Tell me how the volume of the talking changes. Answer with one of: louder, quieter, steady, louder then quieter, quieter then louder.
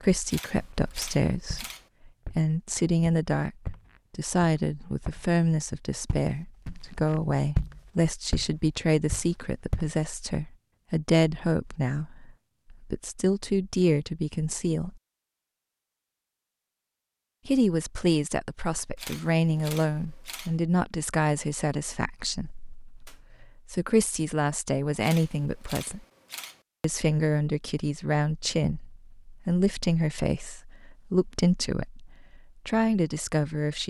steady.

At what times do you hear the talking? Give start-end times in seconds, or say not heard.
0.0-14.9, 17.4-26.0, 26.8-33.8.